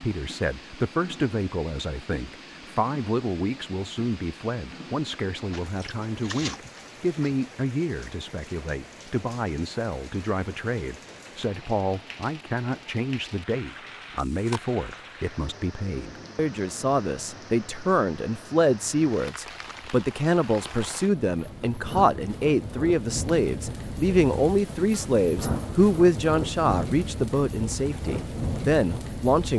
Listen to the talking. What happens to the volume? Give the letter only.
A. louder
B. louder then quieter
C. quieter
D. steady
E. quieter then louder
A.